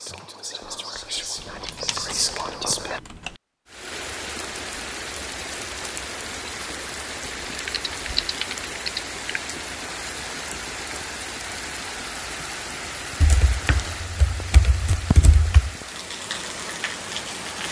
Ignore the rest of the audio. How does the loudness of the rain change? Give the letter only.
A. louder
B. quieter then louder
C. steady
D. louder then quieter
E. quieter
C.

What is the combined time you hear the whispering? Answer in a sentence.
The whispering can be heard for 3 seconds in total.